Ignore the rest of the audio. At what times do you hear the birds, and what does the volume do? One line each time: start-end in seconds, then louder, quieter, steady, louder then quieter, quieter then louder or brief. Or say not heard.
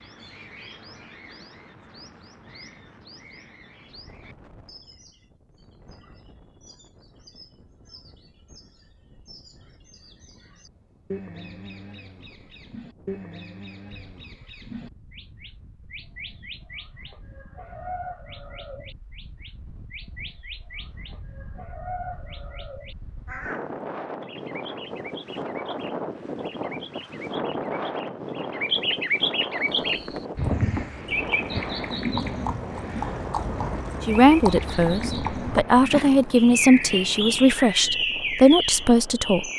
0.0-39.5 louder.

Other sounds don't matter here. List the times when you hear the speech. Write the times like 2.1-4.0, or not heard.
34.0-39.5.